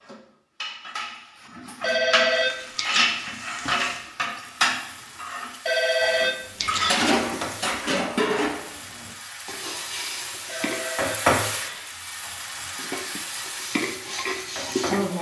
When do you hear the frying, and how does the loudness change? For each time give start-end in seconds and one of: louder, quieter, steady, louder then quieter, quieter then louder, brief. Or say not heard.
2.3-15.1 louder then quieter.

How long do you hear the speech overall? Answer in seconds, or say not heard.
not heard.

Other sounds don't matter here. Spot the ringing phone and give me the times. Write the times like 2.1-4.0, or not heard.
1.8-3.1, 5.7-7.6, 10.4-12.2.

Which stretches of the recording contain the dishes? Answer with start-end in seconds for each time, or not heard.
0.0-10.8, 12.3-15.1.